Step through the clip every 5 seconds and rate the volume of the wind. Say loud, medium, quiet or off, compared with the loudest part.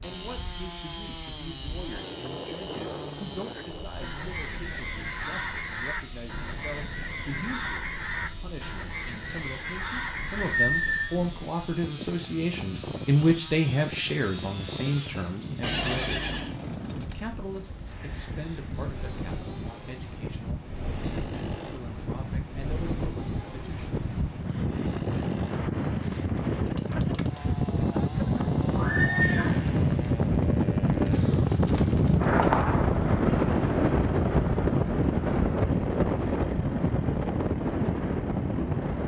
quiet, quiet, quiet, quiet, medium, loud, loud, loud.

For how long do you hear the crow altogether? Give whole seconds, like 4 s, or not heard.
7 s.